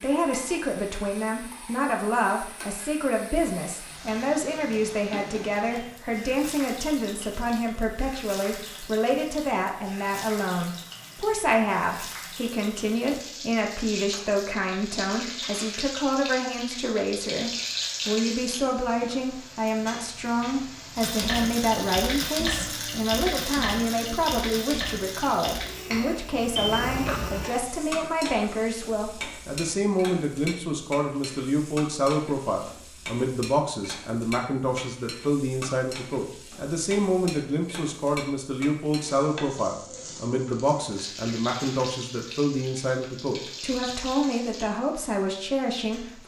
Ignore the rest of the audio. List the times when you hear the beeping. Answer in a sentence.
You can hear the beeping from 26.6 to 27.5 s.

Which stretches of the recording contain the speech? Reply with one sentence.
The speech can be heard from 0.0 to 46.2 s.